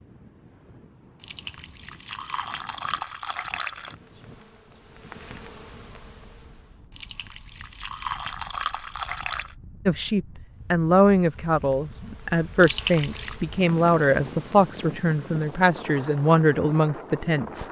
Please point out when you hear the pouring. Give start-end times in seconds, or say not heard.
1.2-4.0, 6.9-9.6, 12.6-13.4.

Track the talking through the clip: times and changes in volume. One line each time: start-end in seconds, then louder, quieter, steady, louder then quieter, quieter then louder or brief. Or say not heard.
9.8-17.6 steady.